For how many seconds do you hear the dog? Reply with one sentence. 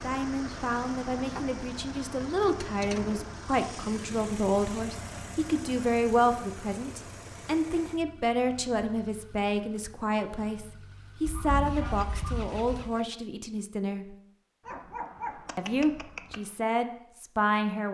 You can hear the dog for 2 seconds altogether.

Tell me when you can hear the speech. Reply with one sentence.
The speech can be heard from 0.0 to 14.2 s and from 15.6 to 17.8 s.